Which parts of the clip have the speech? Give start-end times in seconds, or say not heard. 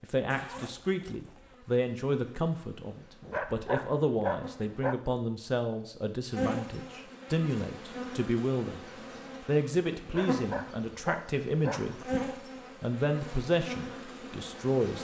0.0-8.8, 9.4-12.2, 12.8-14.9.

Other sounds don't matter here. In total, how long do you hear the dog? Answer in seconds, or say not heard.
4 s.